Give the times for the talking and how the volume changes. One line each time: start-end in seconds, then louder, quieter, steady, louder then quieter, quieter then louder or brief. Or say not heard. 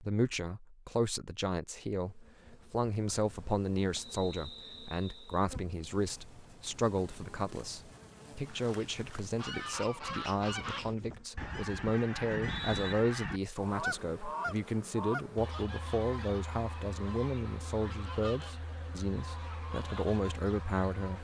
0.0-21.2 steady.